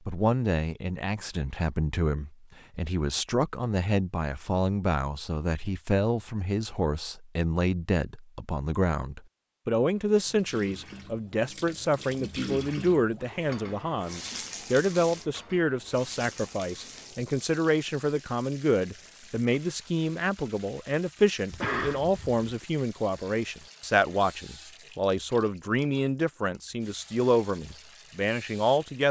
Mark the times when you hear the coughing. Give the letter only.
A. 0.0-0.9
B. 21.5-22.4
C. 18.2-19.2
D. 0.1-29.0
B.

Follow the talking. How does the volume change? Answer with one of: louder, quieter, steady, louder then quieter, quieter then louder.
steady.